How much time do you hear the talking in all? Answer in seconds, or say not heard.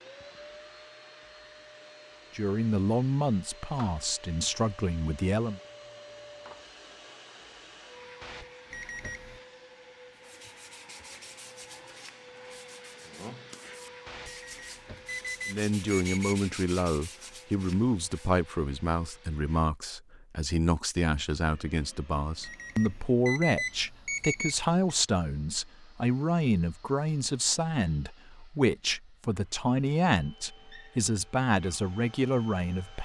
21 s.